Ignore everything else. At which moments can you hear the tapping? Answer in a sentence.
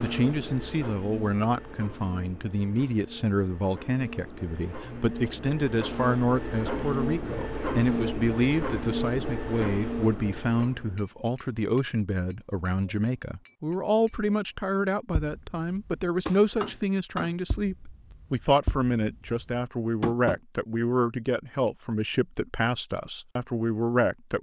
You can hear the tapping from 10.6 to 20.4 s.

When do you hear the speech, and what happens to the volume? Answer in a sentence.
The speech can be heard from 0.0 to 24.3 s, at a steady volume.